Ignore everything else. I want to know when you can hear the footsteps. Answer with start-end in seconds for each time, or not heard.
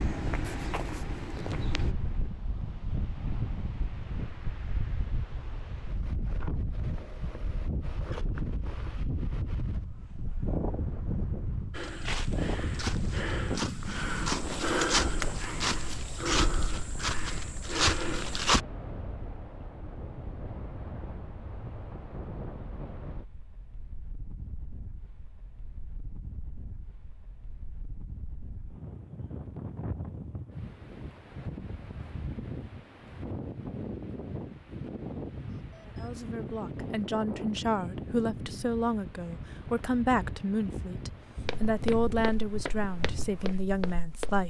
0.0-1.9, 11.7-18.6, 41.5-44.4.